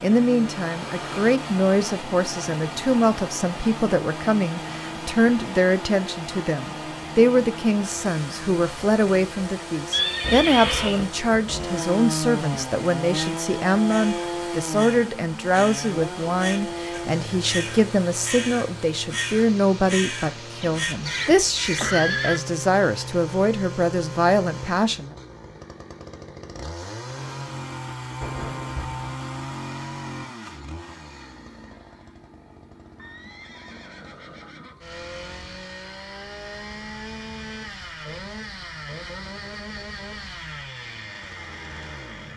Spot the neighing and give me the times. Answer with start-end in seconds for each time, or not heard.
9.9-11.1, 20.6-22.4, 33.0-34.9.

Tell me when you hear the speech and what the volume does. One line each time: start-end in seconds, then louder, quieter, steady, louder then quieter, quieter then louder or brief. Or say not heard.
0.0-25.1 steady.